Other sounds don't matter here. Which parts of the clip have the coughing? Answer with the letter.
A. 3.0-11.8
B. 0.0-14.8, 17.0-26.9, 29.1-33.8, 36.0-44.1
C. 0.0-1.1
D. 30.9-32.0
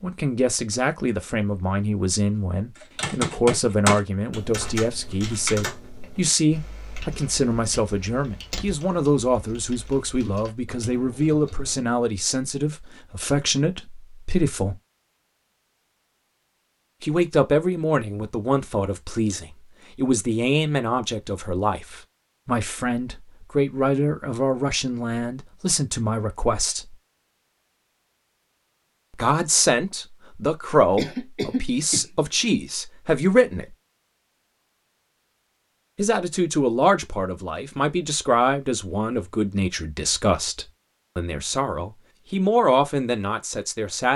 D.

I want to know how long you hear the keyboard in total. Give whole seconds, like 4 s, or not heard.
9 s.